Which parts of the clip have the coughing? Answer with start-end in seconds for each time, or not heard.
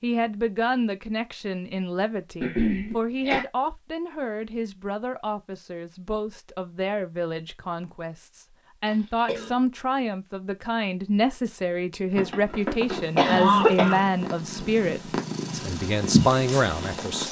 2.4-3.5, 8.8-9.6, 12.2-14.7.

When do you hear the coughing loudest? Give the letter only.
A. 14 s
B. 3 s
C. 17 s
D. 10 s
A.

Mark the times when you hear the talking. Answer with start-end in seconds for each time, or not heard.
0.0-17.2.